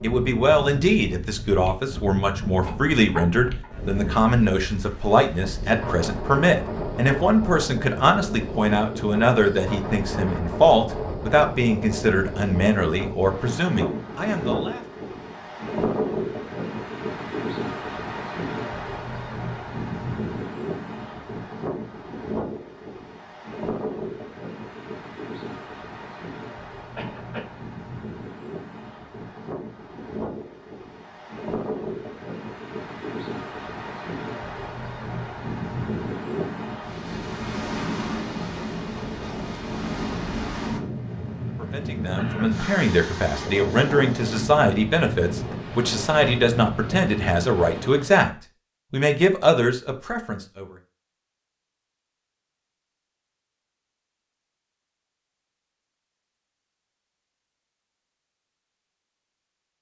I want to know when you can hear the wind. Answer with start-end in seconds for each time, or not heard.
0.0-48.2.